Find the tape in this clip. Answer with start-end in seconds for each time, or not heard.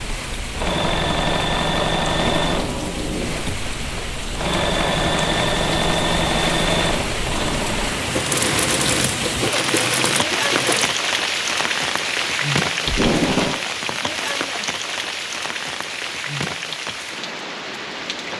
2.0-3.6, 12.8-13.6.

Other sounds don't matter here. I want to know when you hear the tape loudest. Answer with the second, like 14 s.
13 s.